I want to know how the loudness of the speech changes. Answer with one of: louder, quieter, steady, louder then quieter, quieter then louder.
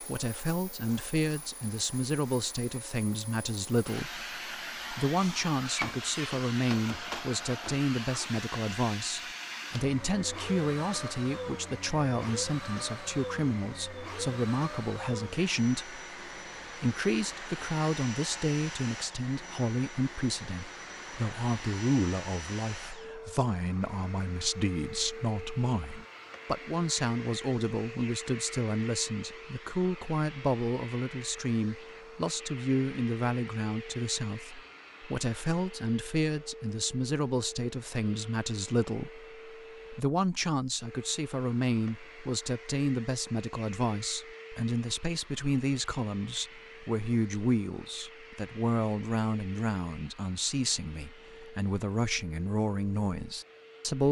steady.